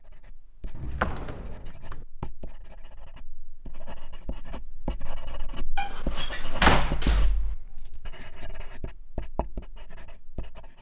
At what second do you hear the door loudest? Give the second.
7 s.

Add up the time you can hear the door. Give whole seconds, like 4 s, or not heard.
3 s.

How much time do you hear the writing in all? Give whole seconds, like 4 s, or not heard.
11 s.